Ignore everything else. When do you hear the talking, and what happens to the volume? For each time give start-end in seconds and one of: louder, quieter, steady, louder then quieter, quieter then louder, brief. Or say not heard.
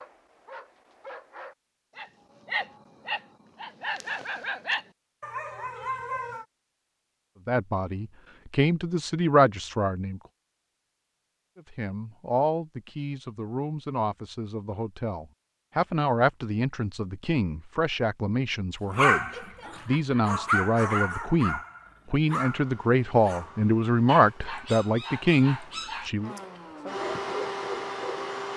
7.5-10.2 brief
11.6-26.3 louder.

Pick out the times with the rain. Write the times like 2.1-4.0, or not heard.
not heard.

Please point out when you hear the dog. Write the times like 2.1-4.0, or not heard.
0.0-6.5, 18.9-26.1, 26.9-28.3.